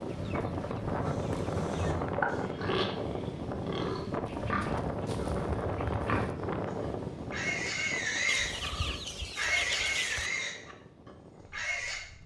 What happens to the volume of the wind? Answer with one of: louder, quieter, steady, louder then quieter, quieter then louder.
quieter.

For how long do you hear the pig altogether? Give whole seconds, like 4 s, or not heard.
11 s.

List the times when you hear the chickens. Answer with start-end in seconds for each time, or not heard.
0.1-2.1, 4.2-6.3, 8.2-10.3.